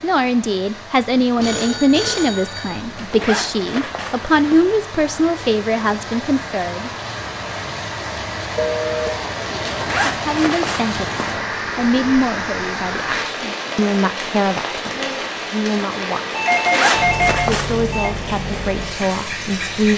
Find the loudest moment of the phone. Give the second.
17 s.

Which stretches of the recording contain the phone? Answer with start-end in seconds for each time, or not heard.
1.4-3.1, 8.6-9.1, 16.4-18.1.